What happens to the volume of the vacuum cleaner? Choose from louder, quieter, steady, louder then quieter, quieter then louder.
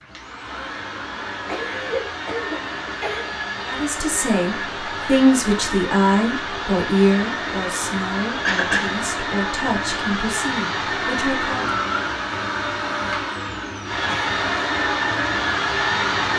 louder.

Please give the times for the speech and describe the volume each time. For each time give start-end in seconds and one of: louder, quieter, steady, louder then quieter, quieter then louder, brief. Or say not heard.
3.6-11.7 quieter.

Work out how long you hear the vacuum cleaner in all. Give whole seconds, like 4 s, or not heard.
16 s.